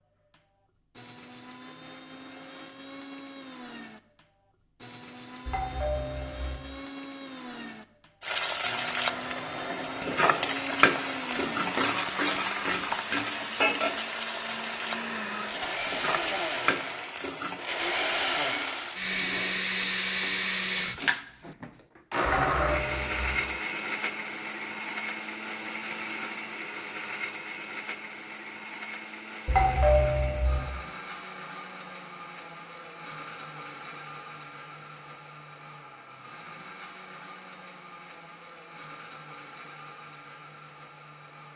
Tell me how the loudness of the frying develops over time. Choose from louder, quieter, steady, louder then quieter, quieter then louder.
quieter.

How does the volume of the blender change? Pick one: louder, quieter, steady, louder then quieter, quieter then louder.
louder then quieter.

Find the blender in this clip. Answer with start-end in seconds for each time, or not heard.
0.1-41.5.